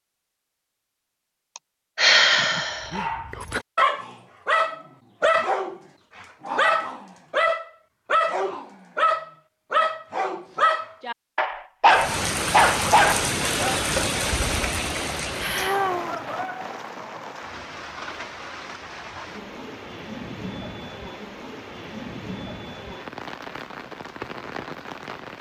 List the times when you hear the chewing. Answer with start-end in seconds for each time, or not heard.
not heard.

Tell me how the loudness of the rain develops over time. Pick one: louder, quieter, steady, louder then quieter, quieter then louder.
quieter.